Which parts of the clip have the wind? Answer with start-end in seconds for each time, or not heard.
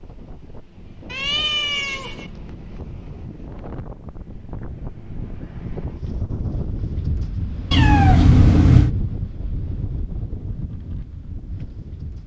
0.0-12.2.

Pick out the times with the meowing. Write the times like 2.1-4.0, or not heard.
1.1-2.3, 7.7-8.9.